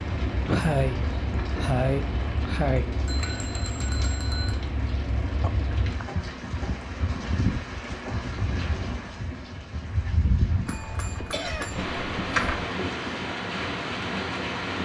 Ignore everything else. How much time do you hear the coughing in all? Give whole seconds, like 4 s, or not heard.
4 s.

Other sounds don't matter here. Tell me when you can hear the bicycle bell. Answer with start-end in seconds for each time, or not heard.
3.0-4.6, 10.7-12.7.